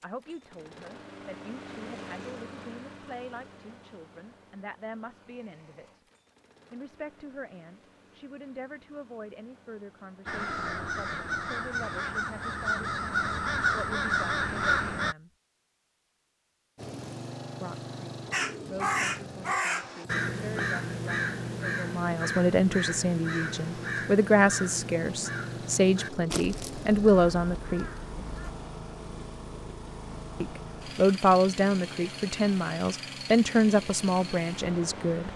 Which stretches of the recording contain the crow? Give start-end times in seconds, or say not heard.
10.2-15.2, 18.3-28.6.